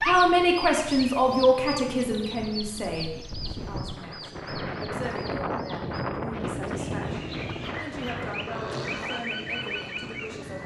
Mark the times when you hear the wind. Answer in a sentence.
You can hear the wind from 0.0 to 10.6 s.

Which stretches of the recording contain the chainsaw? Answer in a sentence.
The chainsaw can be heard from 7.0 to 10.6 s.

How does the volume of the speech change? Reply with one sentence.
The volume of the speech goes down.